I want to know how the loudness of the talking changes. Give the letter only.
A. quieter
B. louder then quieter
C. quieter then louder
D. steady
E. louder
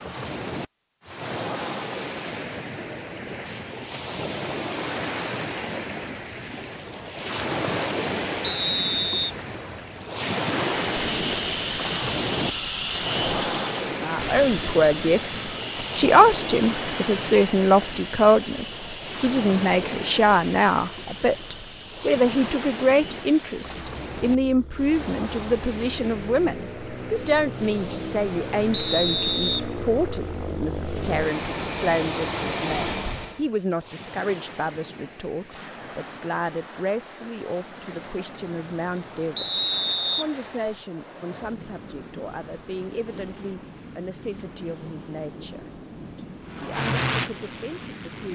A.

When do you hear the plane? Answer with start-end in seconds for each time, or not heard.
10.8-33.5, 46.5-48.3.